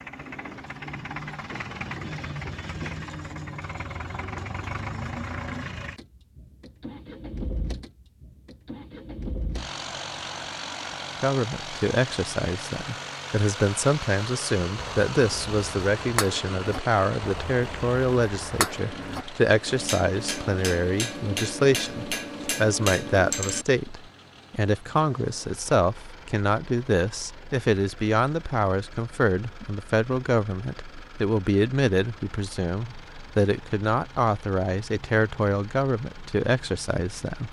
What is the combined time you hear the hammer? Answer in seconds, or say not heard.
9 s.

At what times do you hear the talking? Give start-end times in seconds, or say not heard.
11.2-37.4.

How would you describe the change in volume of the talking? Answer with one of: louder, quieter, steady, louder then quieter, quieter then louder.
steady.